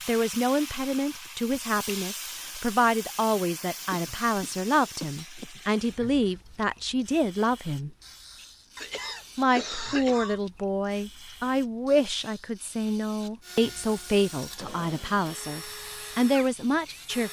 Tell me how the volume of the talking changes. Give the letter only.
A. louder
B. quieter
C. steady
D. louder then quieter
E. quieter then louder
C.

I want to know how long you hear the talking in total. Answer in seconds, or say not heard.
16 s.